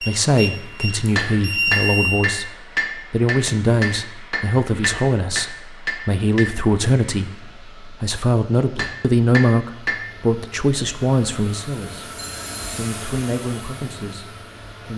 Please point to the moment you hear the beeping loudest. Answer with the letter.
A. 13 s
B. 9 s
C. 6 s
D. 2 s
D.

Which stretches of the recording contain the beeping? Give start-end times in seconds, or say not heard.
0.0-2.2, 12.2-12.8.